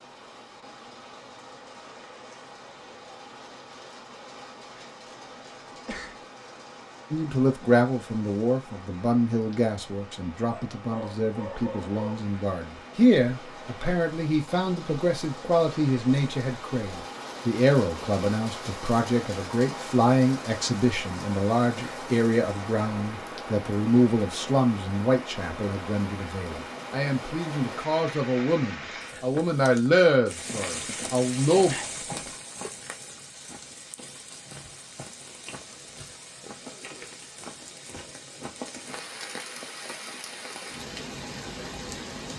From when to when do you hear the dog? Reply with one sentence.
You can hear the dog from 10.4 to 12.2 s.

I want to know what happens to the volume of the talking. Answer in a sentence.
The loudness of the talking stays about the same.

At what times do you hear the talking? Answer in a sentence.
You can hear the talking from 7.1 to 31.8 s.